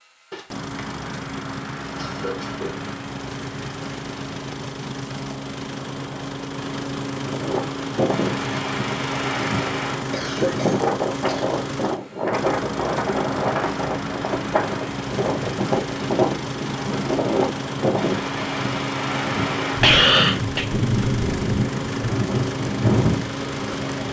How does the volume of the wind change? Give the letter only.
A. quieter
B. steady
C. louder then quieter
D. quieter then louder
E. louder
B.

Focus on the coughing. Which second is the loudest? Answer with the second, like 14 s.
20 s.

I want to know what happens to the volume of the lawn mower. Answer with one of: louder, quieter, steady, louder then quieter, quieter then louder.
steady.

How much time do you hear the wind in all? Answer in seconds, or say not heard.
17 s.